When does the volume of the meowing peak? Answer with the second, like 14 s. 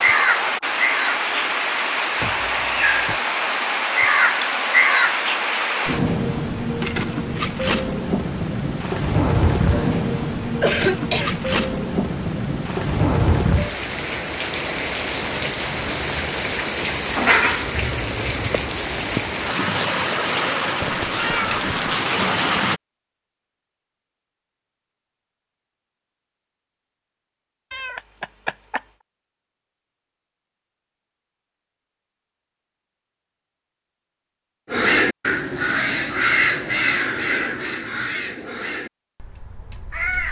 21 s.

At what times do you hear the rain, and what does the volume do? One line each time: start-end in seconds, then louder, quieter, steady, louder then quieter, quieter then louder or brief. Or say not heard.
0.0-22.8 steady.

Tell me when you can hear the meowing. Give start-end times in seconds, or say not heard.
2.2-3.2, 20.8-22.0, 27.7-28.8.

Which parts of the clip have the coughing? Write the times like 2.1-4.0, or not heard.
10.6-11.4.